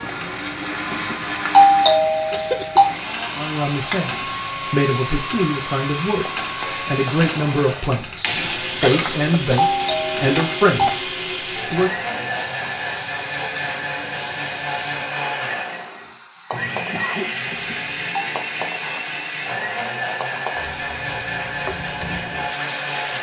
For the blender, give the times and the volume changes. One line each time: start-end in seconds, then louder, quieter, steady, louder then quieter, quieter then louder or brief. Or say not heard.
0.0-23.1 steady.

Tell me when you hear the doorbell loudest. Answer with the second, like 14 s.
2 s.